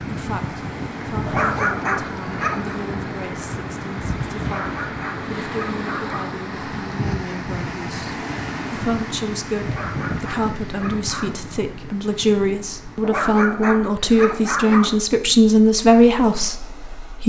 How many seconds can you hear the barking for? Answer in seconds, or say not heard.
7 s.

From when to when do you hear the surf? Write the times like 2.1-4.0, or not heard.
0.0-17.2.